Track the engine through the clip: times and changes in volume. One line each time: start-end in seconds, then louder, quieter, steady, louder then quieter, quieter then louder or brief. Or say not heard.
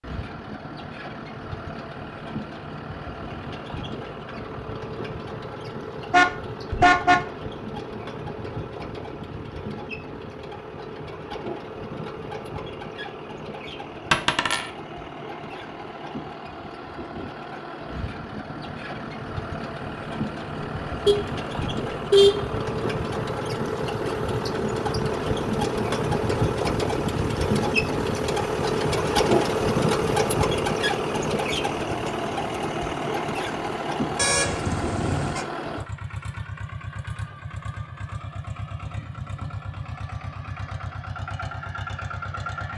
0.0-42.7 louder then quieter.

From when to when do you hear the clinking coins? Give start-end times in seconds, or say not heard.
14.1-14.7.